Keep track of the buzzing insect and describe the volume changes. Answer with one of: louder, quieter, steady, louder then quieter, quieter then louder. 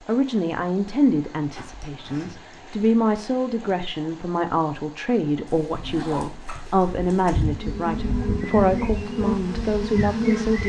louder.